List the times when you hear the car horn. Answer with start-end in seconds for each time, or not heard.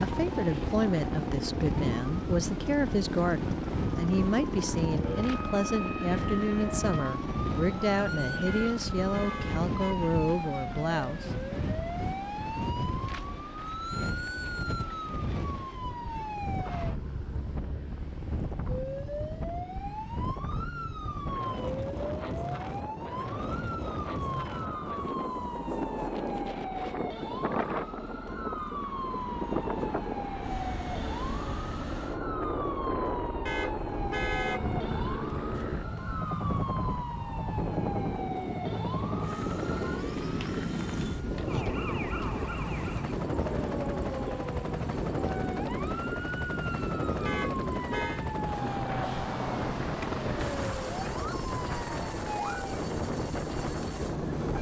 8.4-10.2, 33.5-34.6, 47.2-48.2.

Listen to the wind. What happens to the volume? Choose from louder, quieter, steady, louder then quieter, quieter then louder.
steady.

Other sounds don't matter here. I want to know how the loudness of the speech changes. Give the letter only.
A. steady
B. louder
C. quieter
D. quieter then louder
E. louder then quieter
A.